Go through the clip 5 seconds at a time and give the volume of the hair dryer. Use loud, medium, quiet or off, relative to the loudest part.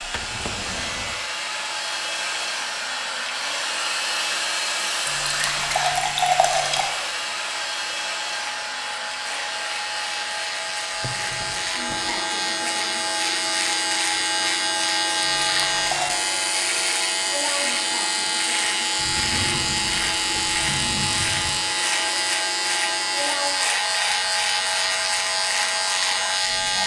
loud, loud, medium, medium, medium, medium.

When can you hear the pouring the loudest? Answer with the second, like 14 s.
6 s.